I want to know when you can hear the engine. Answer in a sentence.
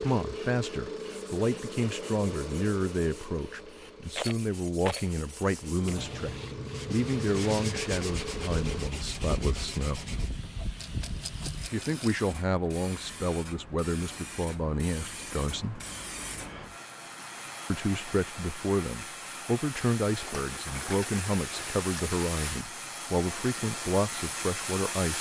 You can hear the engine from 0.0 to 8.9 s.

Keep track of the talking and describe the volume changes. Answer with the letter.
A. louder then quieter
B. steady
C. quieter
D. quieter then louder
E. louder
B.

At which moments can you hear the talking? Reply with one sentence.
The talking can be heard from 0.0 to 10.1 s, from 11.7 to 15.8 s and from 17.7 to 25.1 s.